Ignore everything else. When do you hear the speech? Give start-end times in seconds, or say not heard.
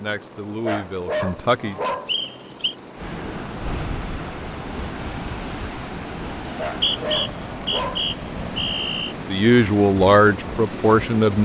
0.0-1.8, 9.2-11.4.